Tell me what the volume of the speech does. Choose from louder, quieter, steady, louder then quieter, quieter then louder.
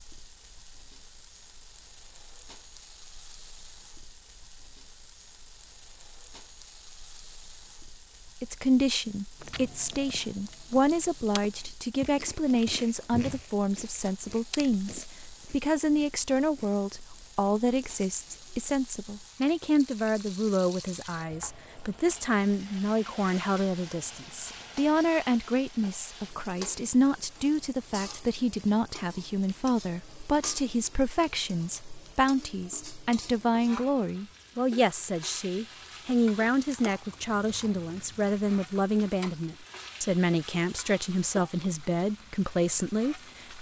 steady.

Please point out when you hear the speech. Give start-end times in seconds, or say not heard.
8.4-43.5.